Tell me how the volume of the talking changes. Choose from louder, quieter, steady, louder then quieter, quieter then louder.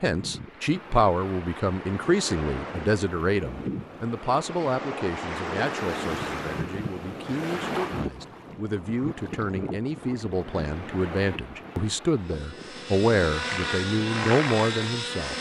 quieter then louder.